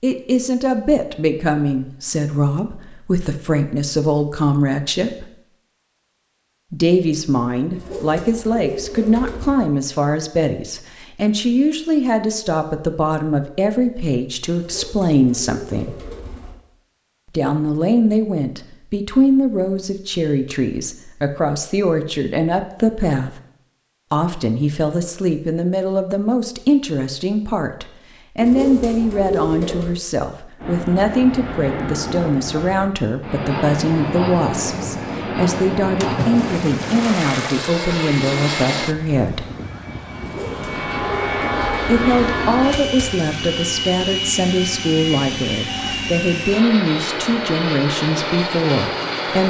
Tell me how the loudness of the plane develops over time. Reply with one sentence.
The volume of the plane stays about the same.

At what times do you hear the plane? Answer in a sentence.
The plane can be heard from 30.6 to 49.4 s.